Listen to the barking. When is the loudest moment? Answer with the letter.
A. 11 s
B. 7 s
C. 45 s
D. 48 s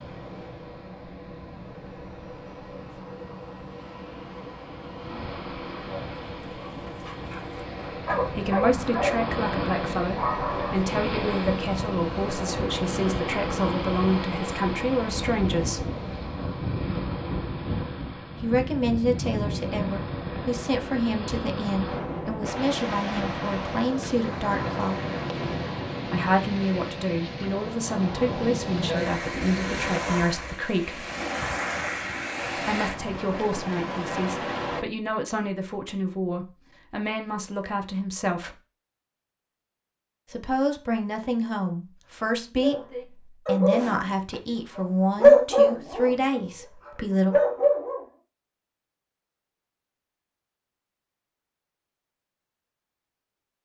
C.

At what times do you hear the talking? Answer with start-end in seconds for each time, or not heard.
8.2-15.8, 18.4-25.0, 26.1-31.1, 32.5-38.5, 40.3-47.4.